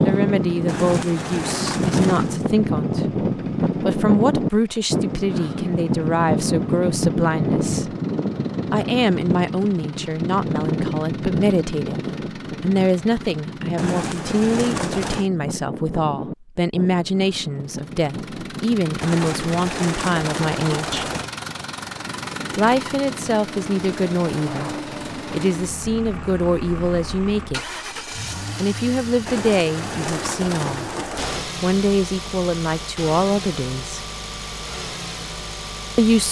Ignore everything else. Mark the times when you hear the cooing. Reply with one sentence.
The cooing can be heard from 0.7 to 2.5 s, from 13.8 to 15.3 s, from 19.0 to 21.3 s and from 29.2 to 31.4 s.